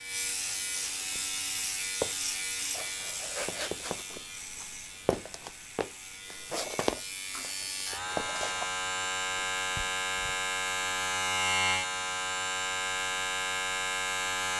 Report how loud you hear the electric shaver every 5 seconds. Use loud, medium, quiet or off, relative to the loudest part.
medium, medium, loud.